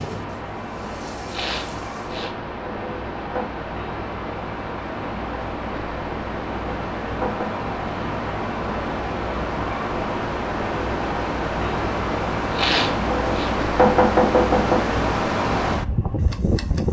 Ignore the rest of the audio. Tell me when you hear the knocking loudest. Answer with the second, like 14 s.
14 s.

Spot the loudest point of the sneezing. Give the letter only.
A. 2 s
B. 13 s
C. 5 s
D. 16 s
B.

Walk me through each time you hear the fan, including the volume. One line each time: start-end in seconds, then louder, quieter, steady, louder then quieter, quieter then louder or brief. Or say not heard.
0.0-16.8 louder.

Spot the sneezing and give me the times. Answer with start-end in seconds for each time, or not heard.
1.2-2.3, 12.5-13.6.